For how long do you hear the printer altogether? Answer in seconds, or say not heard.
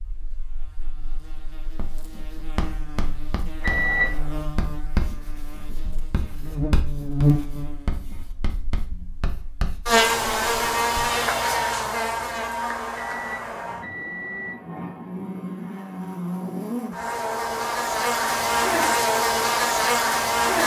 not heard.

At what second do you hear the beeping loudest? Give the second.
4 s.